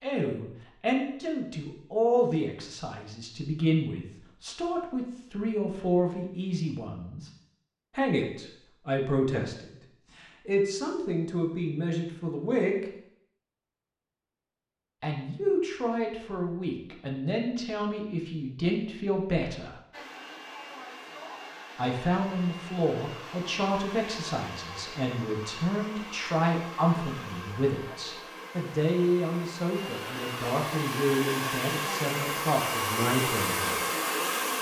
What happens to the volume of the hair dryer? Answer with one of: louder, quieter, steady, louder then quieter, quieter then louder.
louder.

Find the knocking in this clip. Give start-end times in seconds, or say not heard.
not heard.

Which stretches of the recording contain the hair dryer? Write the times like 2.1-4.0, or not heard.
19.9-34.5.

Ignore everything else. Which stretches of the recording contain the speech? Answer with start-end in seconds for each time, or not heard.
0.0-7.3, 8.0-9.7, 10.4-12.8, 15.0-19.8, 21.8-33.9.